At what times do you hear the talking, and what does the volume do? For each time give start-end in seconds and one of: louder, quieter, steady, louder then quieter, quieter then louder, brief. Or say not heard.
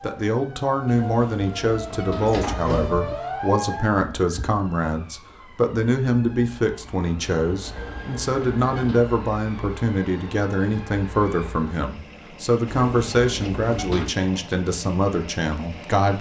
0.0-16.1 steady.